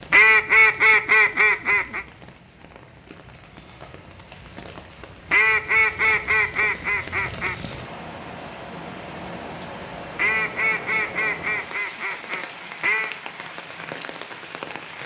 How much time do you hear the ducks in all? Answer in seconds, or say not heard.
7 s.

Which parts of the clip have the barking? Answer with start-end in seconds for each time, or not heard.
not heard.